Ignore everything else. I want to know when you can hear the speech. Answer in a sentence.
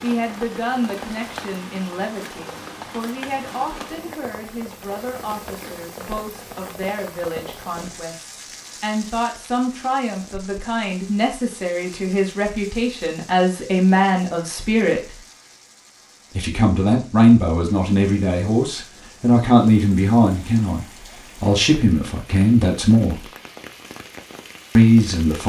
The speech can be heard from 0.0 to 15.2 s, from 16.4 to 23.2 s and from 24.8 to 25.4 s.